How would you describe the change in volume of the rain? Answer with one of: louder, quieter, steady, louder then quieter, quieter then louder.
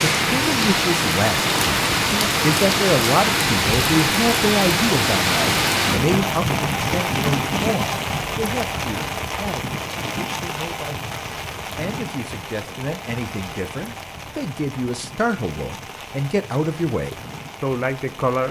quieter.